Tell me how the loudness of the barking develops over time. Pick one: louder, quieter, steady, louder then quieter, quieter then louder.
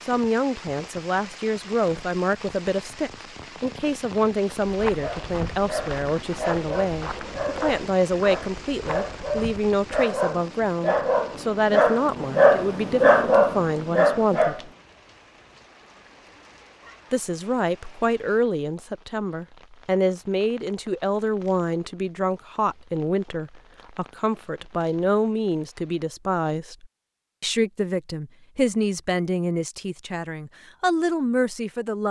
louder.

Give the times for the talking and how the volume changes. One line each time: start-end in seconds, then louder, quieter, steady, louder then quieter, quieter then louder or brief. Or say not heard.
0.1-14.7 steady
17.1-32.0 steady.